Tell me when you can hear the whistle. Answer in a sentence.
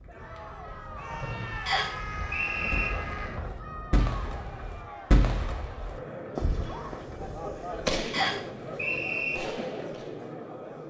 The whistle can be heard from 1.6 to 2.9 s and from 8.1 to 9.3 s.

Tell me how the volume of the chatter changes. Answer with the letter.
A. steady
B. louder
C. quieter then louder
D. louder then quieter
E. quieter
B.